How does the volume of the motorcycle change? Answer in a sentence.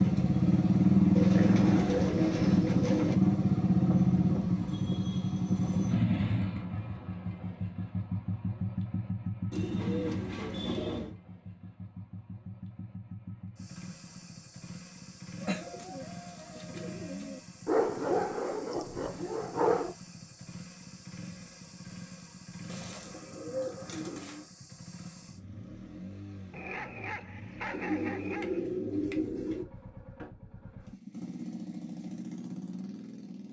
The loudness of the motorcycle goes down.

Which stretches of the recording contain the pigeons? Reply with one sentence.
The pigeons can be heard from 1.1 to 3.1 s, from 9.5 to 11.2 s, from 15.4 to 17.4 s, from 22.6 to 24.4 s and from 27.7 to 29.6 s.